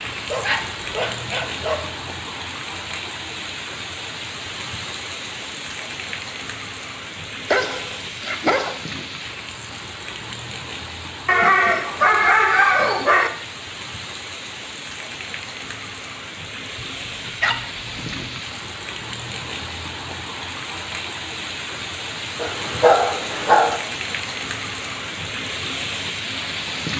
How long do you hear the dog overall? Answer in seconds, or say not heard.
8 s.